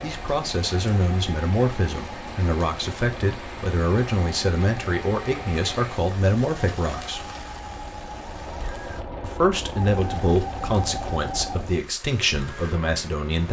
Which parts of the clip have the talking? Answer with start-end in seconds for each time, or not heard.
0.0-7.3, 9.2-13.4.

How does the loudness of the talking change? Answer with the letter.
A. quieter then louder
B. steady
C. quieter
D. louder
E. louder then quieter
B.